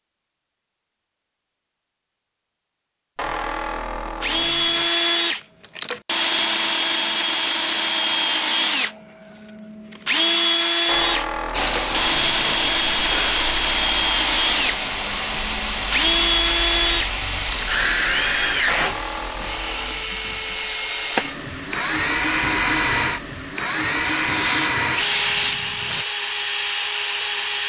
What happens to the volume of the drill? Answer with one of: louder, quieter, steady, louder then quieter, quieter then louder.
steady.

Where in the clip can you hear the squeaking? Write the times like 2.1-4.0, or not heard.
3.1-5.0, 10.8-13.4, 18.6-20.1.